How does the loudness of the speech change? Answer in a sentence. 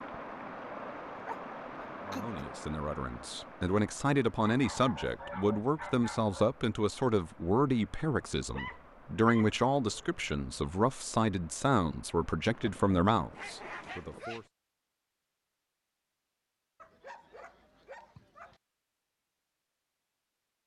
The volume of the speech stays about the same.